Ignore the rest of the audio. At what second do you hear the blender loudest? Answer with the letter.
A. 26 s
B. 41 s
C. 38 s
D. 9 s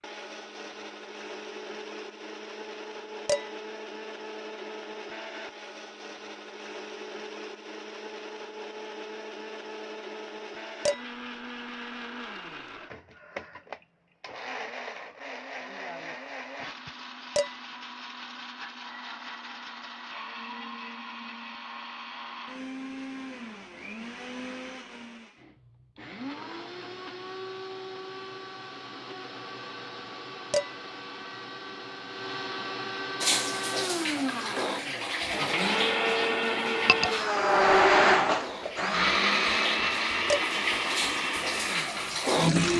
C.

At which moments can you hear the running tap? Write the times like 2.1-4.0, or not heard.
33.2-42.7.